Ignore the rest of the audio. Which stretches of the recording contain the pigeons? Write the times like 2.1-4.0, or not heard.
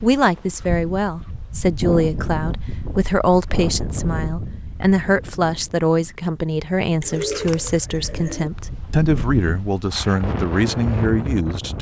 7.0-8.5.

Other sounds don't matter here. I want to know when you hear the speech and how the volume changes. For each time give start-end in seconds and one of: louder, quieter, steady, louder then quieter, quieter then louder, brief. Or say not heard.
0.0-11.7 steady.